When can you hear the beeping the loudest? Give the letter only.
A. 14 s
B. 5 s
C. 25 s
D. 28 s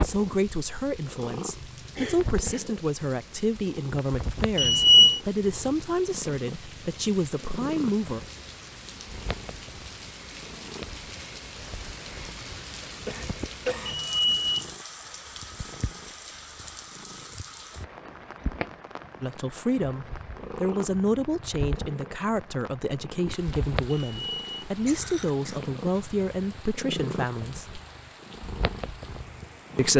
B.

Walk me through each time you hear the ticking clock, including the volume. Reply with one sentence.
The ticking clock can't be heard in this clip.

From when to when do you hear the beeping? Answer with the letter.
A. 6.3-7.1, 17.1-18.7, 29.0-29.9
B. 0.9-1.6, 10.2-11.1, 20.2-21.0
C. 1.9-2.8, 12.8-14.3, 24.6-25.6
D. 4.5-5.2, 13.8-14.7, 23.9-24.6
D.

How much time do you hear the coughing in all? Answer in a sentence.
The coughing can be heard for 3 seconds in total.